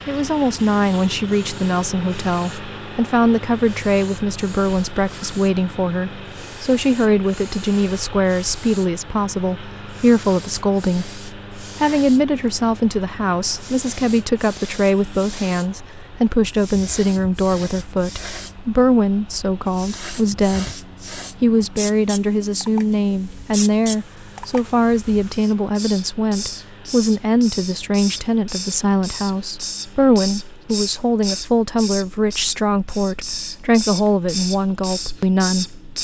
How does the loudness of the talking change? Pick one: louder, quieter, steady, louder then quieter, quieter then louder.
steady.